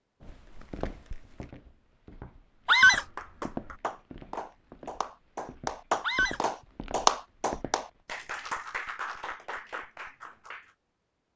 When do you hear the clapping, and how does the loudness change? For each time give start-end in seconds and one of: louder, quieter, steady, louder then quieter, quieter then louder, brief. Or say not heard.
2.6-10.7 louder then quieter.